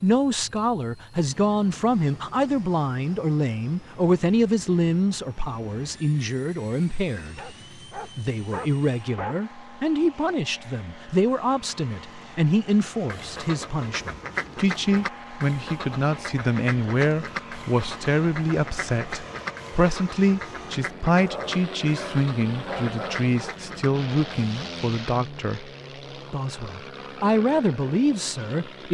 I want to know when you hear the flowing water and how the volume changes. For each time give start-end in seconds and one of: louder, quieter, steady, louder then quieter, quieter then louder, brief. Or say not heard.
not heard.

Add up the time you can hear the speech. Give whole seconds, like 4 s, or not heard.
28 s.